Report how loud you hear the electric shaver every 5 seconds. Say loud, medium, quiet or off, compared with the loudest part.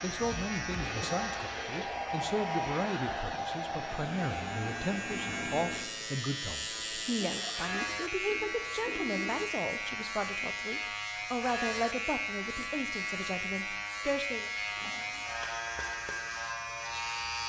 medium, loud, loud, loud.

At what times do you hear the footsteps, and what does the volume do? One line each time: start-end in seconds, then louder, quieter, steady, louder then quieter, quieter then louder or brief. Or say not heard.
not heard.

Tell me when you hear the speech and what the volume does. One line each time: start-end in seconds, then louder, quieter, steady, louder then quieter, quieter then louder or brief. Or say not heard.
0.0-14.5 steady.